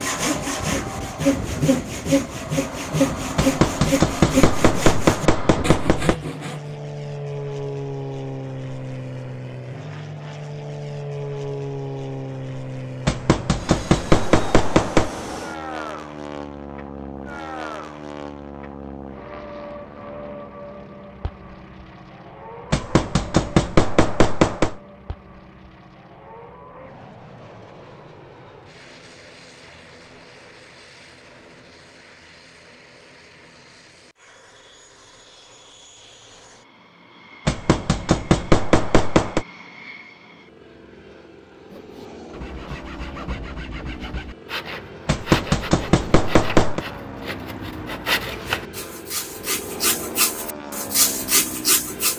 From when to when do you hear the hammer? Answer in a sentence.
You can hear the hammer from 3.4 to 6.2 s, from 13.1 to 15.1 s, from 22.7 to 24.8 s, from 37.5 to 39.5 s and from 45.0 to 46.8 s.